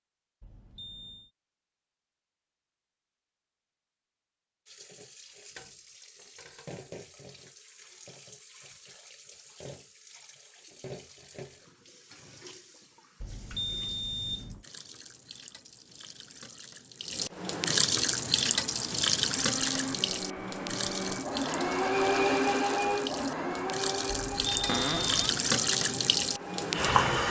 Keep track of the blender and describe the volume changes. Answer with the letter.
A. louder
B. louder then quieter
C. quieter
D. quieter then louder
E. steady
B.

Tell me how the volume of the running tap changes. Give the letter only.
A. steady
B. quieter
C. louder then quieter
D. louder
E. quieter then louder
D.